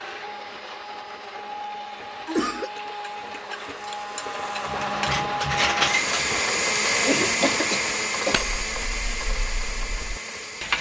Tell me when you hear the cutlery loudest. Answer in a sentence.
The loudest moment of the cutlery is at 6 seconds.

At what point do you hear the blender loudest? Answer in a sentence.
The loudest moment of the blender is at 7 seconds.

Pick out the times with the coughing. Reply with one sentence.
You can hear the coughing from 2.0 to 2.7 s and from 7.0 to 8.4 s.